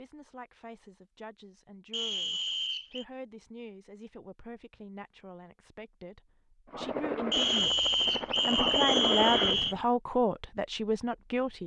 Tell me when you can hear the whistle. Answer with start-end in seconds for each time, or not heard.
1.9-3.0, 7.3-9.8.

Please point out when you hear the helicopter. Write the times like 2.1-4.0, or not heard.
6.7-9.8.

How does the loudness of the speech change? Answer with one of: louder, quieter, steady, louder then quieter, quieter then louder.
louder.